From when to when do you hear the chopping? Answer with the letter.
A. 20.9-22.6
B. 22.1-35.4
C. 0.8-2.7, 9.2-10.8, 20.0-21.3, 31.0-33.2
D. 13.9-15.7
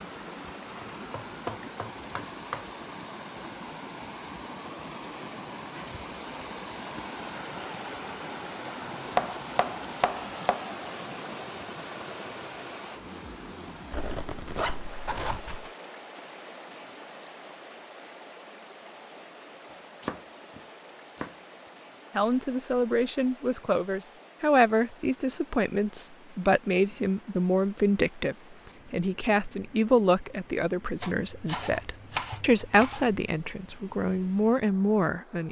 C.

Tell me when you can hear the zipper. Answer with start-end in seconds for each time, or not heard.
13.9-15.7.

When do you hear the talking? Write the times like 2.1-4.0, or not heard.
22.1-35.4.